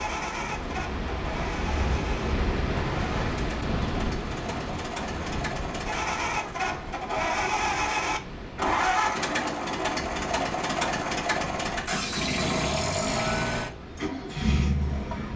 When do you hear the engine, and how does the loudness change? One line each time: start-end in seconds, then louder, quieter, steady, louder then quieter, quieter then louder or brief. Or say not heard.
0.0-15.3 louder.